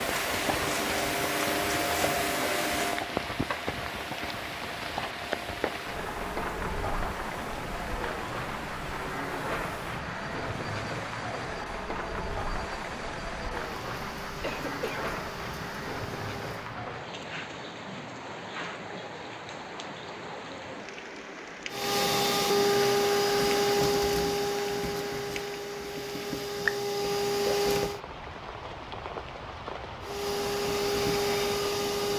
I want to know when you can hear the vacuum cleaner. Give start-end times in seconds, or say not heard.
0.0-16.8, 21.7-28.0, 30.0-32.1.